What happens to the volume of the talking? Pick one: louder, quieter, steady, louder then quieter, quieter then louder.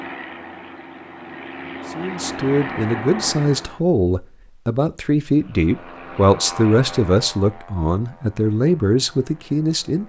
steady.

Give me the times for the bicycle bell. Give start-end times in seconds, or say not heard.
not heard.